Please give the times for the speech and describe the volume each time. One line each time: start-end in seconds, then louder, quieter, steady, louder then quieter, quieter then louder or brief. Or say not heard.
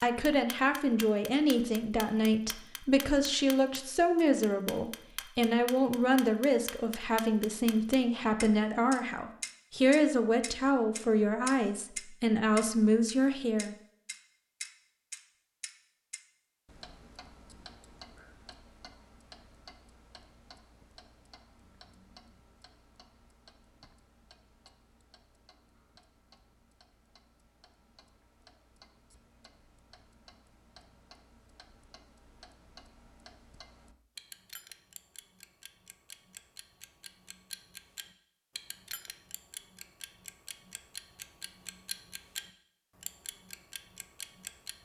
0.0-13.8 steady.